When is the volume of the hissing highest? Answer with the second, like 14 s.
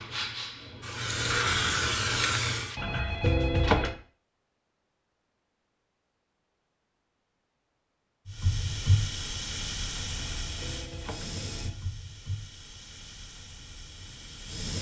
2 s.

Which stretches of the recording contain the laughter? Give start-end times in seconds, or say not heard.
not heard.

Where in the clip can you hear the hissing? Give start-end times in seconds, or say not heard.
0.0-2.8, 8.2-14.7.